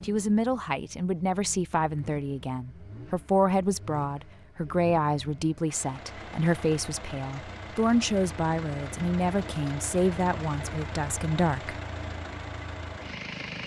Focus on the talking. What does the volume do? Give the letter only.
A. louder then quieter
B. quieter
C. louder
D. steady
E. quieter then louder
D.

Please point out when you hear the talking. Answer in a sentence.
You can hear the talking from 0.0 to 11.8 s.